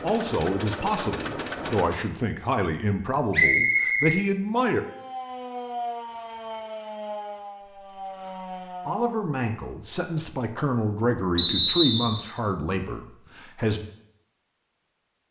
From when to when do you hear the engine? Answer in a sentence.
The engine can be heard from 0.0 to 2.1 s.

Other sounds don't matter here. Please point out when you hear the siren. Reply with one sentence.
You can hear the siren from 4.8 to 9.2 s.